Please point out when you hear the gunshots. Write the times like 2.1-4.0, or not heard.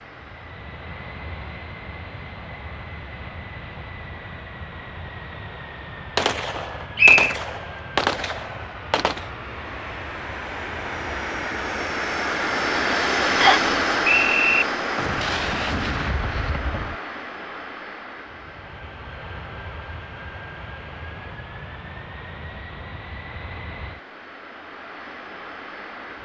6.2-9.2, 14.9-16.9.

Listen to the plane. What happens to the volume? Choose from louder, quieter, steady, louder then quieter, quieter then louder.
louder then quieter.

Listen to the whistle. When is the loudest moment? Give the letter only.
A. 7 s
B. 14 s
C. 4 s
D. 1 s
A.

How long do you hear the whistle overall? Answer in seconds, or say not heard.
2 s.